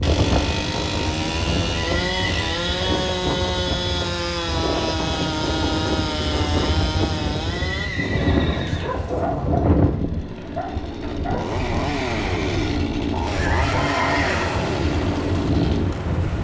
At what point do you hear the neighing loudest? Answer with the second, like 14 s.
14 s.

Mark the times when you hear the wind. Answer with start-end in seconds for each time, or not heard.
0.0-16.3.